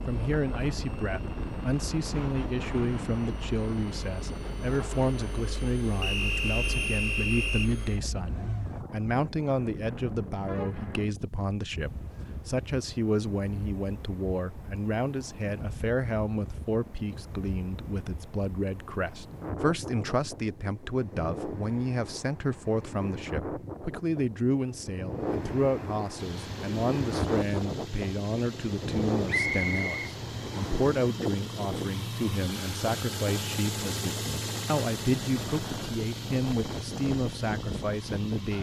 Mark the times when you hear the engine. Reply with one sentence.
The engine can be heard from 0.0 to 8.8 s and from 26.1 to 38.5 s.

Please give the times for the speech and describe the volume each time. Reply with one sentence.
You can hear the speech from 0.1 to 38.5 s, at a steady volume.